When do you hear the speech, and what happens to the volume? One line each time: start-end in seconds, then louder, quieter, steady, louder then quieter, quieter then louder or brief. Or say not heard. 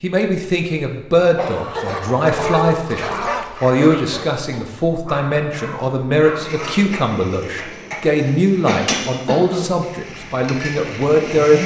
0.0-11.6 steady.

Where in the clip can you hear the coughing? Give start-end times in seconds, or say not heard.
1.4-2.6, 8.7-9.8.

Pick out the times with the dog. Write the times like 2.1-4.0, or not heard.
1.6-7.1.